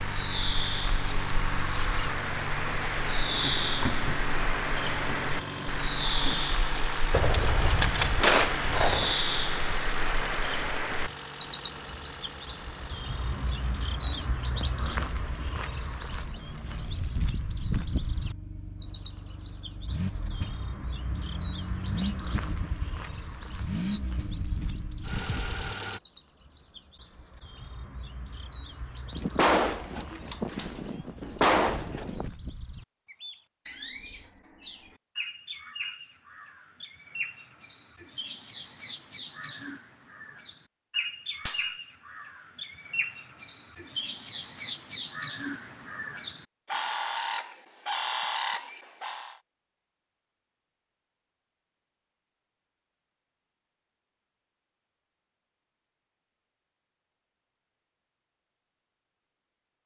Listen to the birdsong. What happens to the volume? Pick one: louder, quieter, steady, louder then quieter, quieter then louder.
quieter then louder.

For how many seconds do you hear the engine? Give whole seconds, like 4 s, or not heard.
26 s.